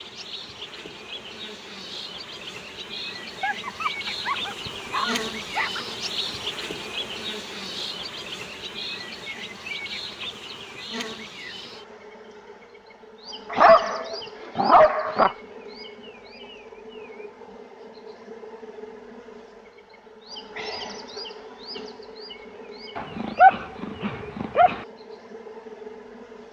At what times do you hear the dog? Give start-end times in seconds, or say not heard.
3.2-5.8, 13.5-15.3, 22.9-24.9.